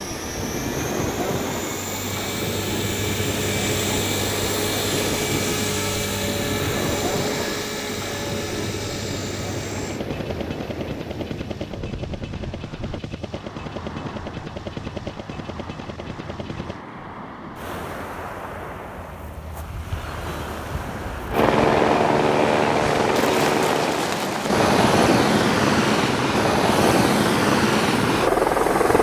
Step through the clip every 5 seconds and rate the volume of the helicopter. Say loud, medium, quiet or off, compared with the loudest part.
medium, medium, quiet, quiet, loud, loud.